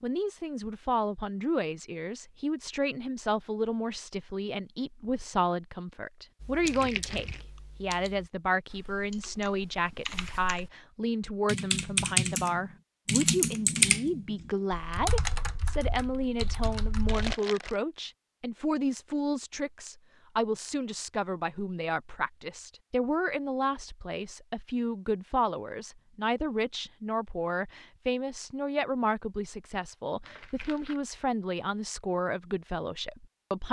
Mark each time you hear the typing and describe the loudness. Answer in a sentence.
The typing can be heard from 6.4 to 10.7 s, getting quieter then louder; and from 11.4 to 17.4 s, getting quieter.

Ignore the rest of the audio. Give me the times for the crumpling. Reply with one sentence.
You can hear the crumpling from 6.7 to 7.4 s, from 17.1 to 17.8 s and from 30.2 to 31.0 s.